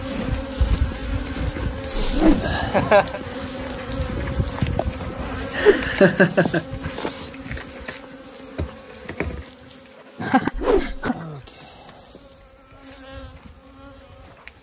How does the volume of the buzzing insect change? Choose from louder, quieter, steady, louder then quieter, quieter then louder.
quieter.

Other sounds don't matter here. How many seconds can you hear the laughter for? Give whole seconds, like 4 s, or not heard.
3 s.